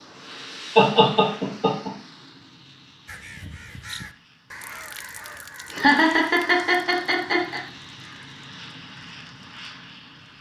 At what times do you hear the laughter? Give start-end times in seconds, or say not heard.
0.8-1.9, 5.7-7.6.